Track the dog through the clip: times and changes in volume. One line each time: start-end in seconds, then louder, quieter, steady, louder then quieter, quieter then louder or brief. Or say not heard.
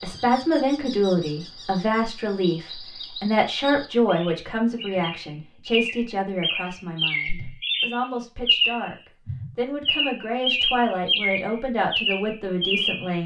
not heard.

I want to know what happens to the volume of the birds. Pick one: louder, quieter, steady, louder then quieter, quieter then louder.
louder.